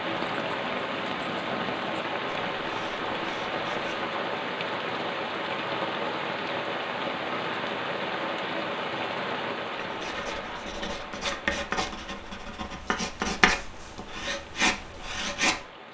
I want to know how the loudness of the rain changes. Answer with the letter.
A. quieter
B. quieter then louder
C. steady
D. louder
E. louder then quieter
A.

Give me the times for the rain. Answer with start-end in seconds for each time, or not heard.
0.0-15.8.